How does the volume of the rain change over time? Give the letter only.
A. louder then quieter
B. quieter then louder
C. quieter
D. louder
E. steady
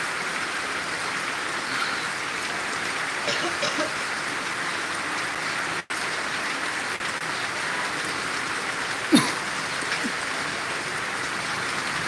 E.